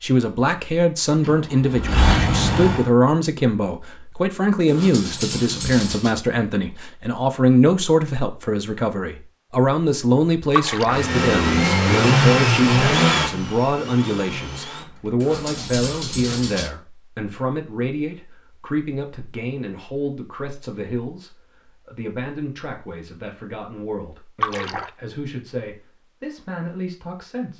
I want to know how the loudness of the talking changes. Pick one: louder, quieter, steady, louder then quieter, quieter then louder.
quieter.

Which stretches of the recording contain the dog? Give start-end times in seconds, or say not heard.
4.7-6.2, 15.2-16.7.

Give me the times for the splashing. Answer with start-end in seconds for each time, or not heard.
10.5-11.1, 24.4-24.9.